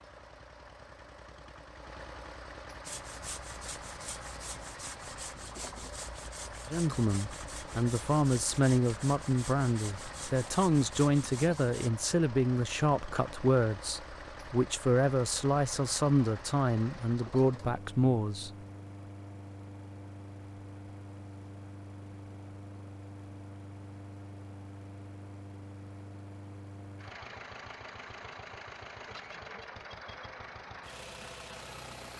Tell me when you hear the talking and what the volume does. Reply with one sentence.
The talking can be heard from 6.7 to 18.5 s, at a steady volume.